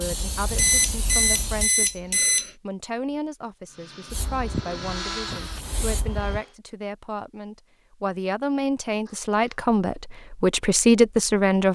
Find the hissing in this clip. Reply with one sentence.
You can hear the hissing from 0.0 to 2.1 s and from 4.1 to 6.4 s.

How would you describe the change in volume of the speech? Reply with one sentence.
The loudness of the speech goes up.